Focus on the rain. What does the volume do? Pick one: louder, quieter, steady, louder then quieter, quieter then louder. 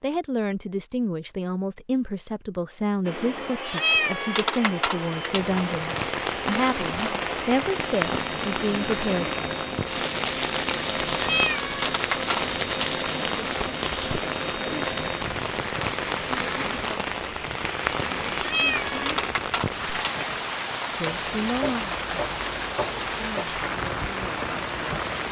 steady.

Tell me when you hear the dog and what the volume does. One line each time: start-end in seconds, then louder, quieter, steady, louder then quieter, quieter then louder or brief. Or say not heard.
not heard.